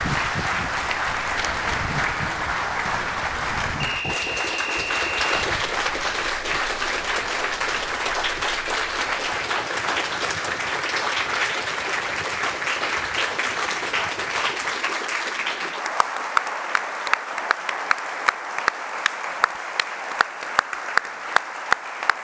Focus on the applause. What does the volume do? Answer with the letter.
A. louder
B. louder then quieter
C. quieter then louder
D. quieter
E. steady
E.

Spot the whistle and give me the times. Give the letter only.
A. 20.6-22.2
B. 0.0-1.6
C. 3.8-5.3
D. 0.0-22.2
C.